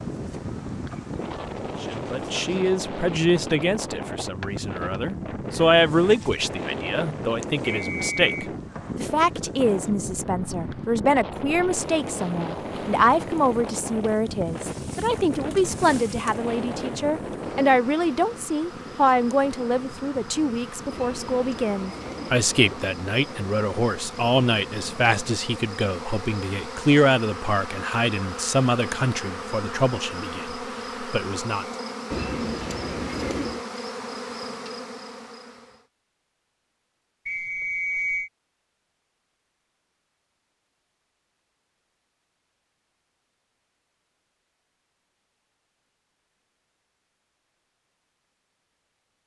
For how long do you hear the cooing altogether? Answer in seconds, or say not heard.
3 s.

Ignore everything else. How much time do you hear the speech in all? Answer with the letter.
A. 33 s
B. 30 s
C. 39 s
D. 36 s
B.